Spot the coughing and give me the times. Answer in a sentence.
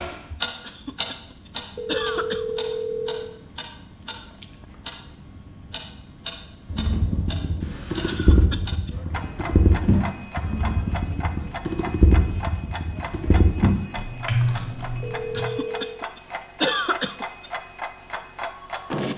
You can hear the coughing from 0.7 to 2.8 s, from 8.1 to 9.0 s and from 15.3 to 17.5 s.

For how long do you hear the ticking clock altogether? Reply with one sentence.
The ticking clock can be heard for 19 seconds in total.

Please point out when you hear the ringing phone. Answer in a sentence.
The ringing phone can be heard from 1.8 to 3.3 s, from 8.9 to 10.9 s and from 15.0 to 16.0 s.